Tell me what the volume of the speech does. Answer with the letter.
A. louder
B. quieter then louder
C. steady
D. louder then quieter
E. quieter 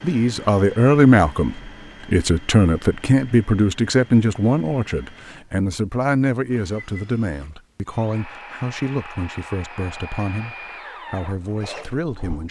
E.